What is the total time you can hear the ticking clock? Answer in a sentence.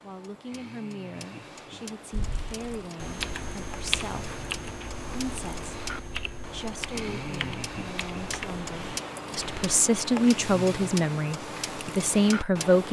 You can hear the ticking clock for 13 seconds altogether.